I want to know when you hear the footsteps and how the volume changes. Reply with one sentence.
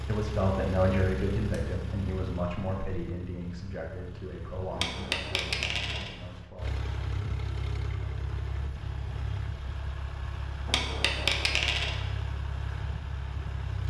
You can't hear the footsteps here.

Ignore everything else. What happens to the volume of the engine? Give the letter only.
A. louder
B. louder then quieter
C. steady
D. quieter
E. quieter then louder
E.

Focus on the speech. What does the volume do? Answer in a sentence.
The volume of the speech goes down.